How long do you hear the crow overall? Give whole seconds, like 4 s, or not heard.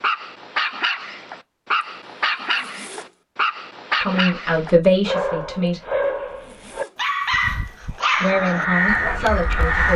2 s.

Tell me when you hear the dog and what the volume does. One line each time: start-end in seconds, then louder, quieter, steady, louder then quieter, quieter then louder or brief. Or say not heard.
0.0-9.9 steady.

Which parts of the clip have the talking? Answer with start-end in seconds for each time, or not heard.
4.0-5.8, 8.2-9.9.